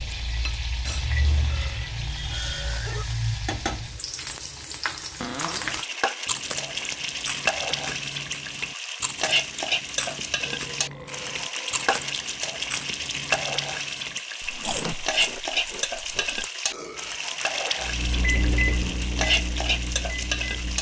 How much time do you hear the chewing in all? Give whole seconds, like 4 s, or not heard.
10 s.